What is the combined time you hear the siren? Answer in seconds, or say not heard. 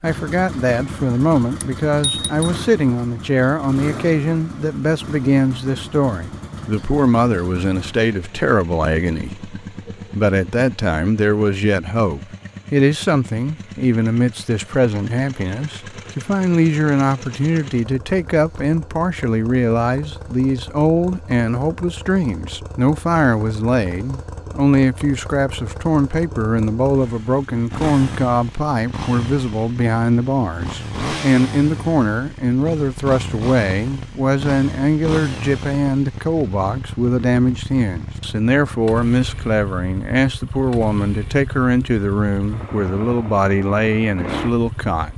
not heard.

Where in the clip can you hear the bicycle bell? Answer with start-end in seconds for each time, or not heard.
1.6-2.5.